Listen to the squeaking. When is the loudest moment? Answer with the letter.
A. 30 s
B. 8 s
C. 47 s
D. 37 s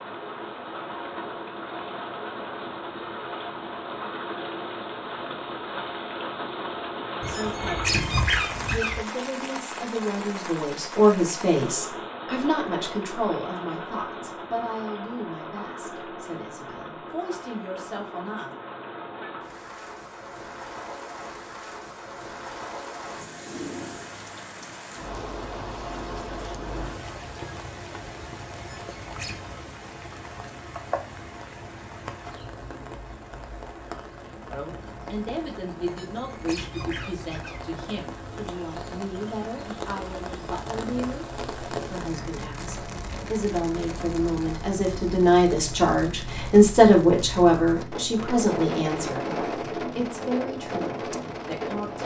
B.